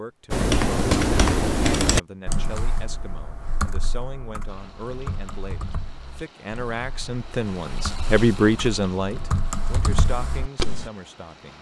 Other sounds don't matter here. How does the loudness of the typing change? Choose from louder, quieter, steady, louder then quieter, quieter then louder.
quieter then louder.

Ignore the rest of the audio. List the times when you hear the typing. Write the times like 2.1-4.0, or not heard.
0.3-10.9.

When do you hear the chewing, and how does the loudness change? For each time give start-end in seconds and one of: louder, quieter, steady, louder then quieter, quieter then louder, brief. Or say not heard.
not heard.